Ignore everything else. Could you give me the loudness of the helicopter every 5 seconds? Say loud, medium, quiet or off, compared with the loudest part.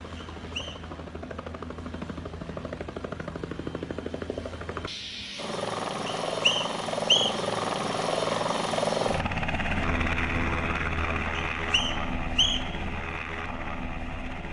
medium, loud, loud.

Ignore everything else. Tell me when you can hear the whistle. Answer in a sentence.
You can hear the whistle from 0.1 to 0.8 s, from 6.2 to 7.3 s and from 11.3 to 12.8 s.